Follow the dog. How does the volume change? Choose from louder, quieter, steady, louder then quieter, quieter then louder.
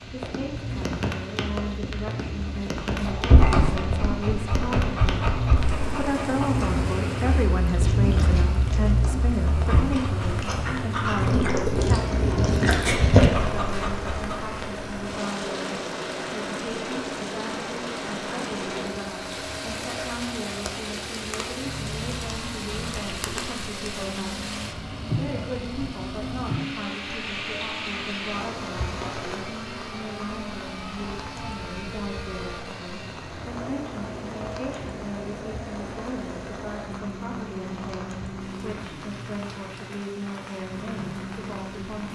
quieter then louder.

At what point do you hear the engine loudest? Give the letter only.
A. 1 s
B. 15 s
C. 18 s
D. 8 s
D.